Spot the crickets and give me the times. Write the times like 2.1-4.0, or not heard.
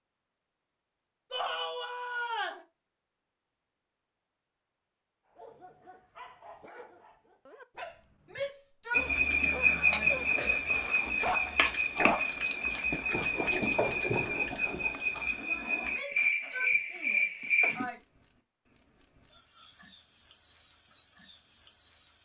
8.9-22.2.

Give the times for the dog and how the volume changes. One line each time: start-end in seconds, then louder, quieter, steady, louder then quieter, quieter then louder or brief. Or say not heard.
5.3-15.2 louder.